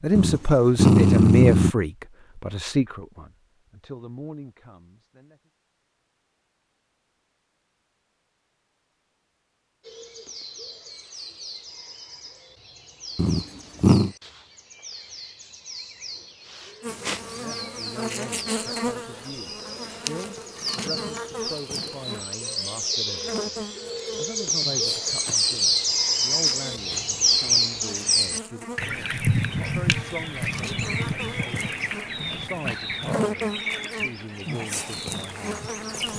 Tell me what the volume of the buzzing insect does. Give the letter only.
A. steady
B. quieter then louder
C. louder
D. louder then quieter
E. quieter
B.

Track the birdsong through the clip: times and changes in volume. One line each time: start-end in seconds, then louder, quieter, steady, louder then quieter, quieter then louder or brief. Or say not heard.
9.8-36.1 louder then quieter.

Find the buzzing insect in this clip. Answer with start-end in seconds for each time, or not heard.
16.8-36.1.